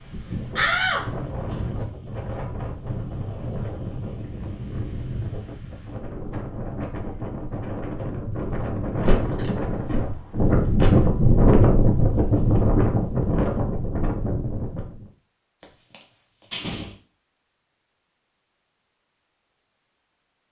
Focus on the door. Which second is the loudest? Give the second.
1 s.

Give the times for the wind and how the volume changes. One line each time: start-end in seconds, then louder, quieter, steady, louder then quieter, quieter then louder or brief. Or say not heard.
0.0-15.1 louder.